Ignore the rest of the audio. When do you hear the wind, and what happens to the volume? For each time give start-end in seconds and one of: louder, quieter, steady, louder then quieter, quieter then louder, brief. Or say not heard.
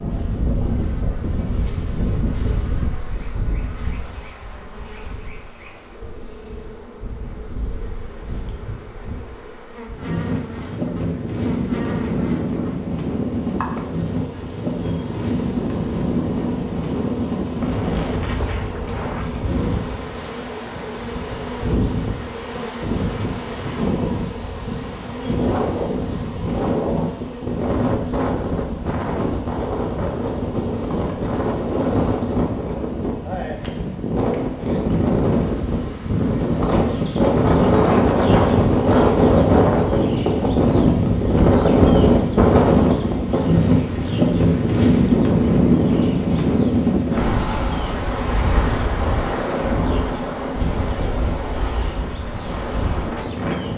0.0-53.7 louder.